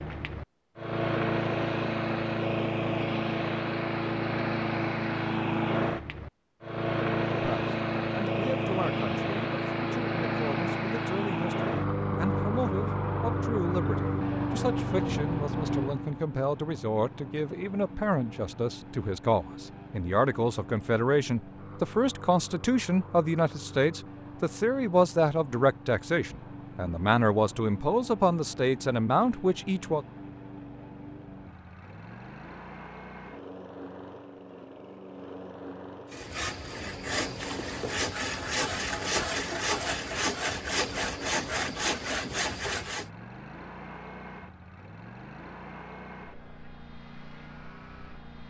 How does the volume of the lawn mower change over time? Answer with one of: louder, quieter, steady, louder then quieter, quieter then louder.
quieter.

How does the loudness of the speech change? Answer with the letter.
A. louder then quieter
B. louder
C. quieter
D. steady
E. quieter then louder
B.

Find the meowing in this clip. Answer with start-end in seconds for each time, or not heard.
not heard.